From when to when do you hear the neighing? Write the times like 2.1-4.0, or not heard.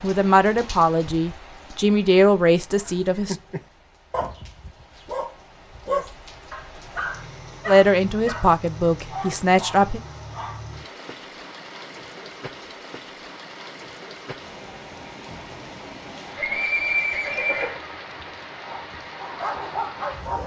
16.4-17.8.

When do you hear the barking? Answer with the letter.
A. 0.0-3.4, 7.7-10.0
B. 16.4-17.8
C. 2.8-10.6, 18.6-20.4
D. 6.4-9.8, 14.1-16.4
C.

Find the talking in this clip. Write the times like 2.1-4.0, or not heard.
0.0-3.4, 7.7-10.0.